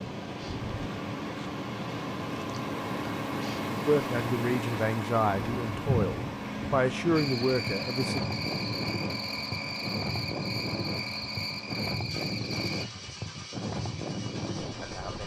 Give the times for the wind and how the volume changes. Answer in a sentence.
You can hear the wind from 0.0 to 15.2 s, at a steady volume.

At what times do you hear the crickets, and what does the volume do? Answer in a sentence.
The crickets can be heard from 7.2 to 15.2 s, getting quieter.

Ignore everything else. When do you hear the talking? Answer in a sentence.
You can hear the talking from 3.9 to 8.2 s.